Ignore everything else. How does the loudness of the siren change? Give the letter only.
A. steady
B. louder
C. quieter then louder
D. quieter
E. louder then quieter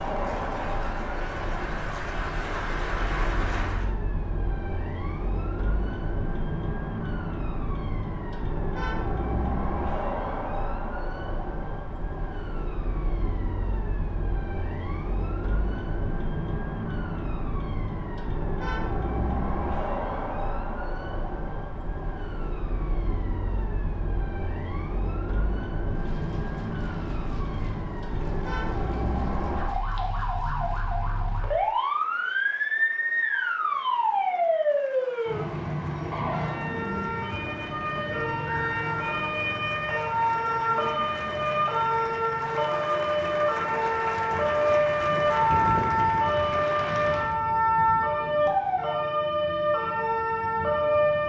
B.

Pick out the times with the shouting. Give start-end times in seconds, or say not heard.
not heard.